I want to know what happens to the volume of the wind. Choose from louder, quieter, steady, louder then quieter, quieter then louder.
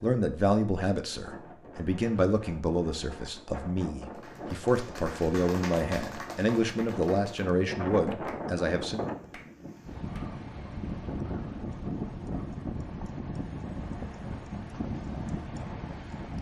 louder.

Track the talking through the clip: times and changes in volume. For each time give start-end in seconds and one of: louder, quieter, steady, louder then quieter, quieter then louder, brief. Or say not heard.
0.0-9.0 steady.